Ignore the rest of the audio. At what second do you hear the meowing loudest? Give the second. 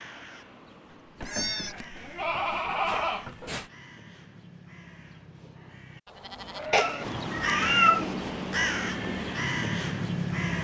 8 s.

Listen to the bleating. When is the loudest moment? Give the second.
3 s.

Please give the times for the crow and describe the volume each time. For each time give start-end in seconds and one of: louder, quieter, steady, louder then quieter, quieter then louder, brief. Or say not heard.
0.0-10.5 louder.